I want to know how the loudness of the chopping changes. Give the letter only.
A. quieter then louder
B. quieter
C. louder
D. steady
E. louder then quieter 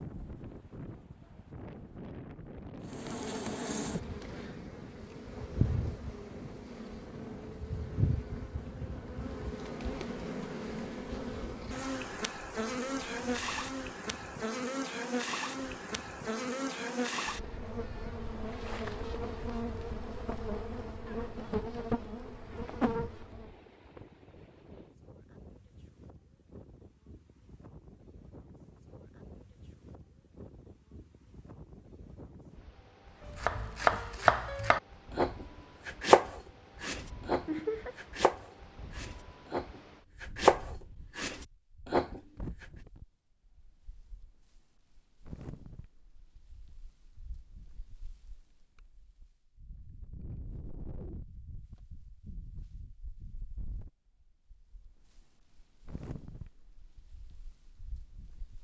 A.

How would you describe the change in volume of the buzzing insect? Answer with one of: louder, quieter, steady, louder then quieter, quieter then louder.
steady.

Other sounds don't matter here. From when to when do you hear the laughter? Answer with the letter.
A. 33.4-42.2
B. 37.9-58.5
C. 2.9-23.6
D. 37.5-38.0
D.